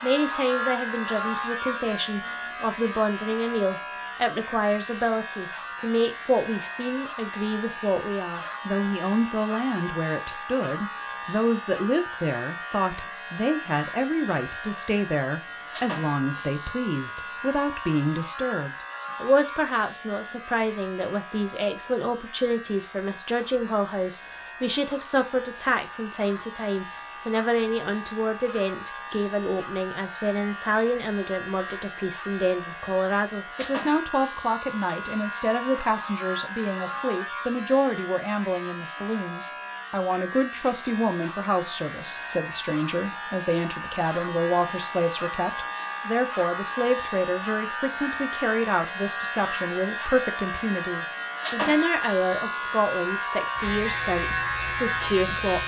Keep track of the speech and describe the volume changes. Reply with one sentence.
The volume of the speech stays about the same.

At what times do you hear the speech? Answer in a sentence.
The speech can be heard from 0.0 to 55.6 s.